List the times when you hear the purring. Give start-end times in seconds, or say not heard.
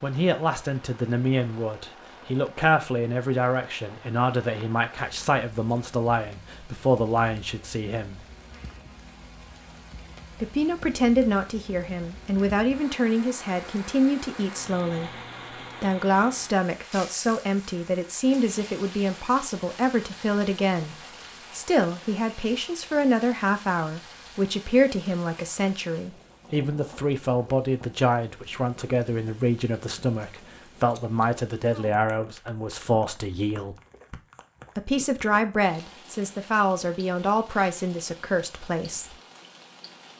not heard.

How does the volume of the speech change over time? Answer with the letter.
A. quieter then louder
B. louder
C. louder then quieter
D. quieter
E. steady
E.